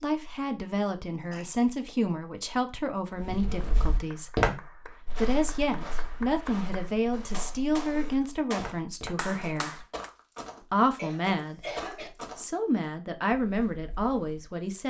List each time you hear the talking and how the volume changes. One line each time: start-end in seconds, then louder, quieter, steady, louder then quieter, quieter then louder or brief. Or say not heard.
0.0-9.8 steady
10.7-11.6 brief
12.3-14.8 brief.